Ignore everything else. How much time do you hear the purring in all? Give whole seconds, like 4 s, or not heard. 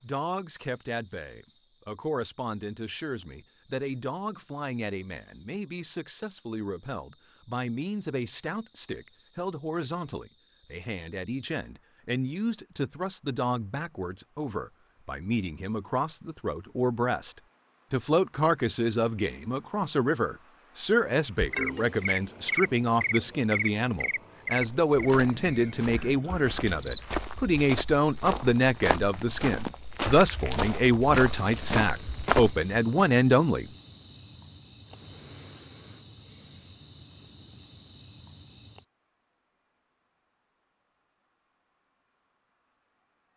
not heard.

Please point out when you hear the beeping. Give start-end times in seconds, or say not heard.
not heard.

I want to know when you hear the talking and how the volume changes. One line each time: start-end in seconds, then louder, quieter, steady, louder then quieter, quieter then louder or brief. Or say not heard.
0.0-33.6 louder.